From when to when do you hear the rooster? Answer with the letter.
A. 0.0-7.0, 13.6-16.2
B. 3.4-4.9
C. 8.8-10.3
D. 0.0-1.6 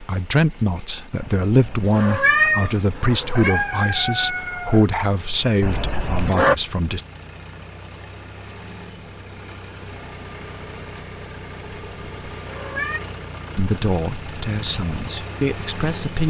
B.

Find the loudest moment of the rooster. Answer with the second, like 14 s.
4 s.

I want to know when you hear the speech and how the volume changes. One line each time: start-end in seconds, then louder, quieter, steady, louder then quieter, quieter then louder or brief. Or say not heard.
0.0-7.0 steady
13.6-16.2 brief.